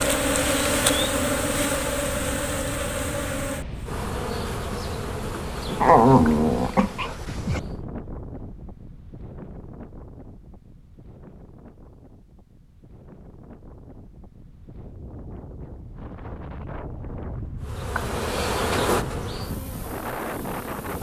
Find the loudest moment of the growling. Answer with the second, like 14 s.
6 s.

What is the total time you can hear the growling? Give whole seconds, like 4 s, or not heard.
2 s.